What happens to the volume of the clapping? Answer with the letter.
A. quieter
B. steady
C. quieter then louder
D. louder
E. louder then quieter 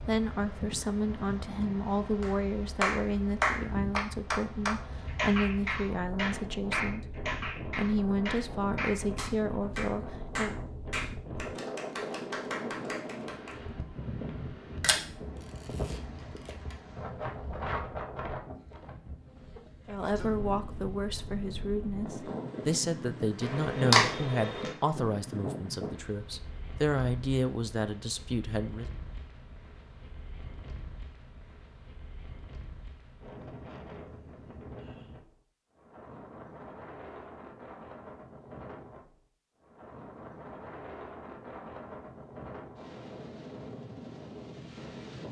A.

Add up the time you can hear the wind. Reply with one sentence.
The wind can be heard for 45 seconds in total.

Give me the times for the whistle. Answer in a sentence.
The whistle can't be heard in this clip.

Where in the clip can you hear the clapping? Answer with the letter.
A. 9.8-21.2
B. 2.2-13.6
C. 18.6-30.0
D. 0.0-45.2
B.